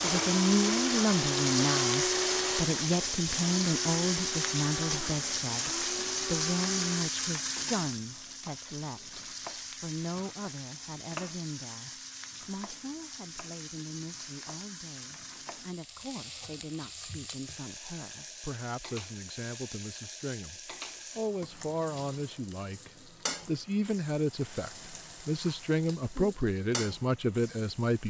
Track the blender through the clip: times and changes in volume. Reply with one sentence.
You can hear the blender from 0.0 to 7.1 s, getting quieter.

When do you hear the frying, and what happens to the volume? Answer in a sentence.
The frying can be heard from 0.0 to 28.0 s, getting quieter.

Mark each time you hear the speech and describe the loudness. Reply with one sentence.
You can hear the speech from 0.0 to 28.0 s, getting quieter then louder.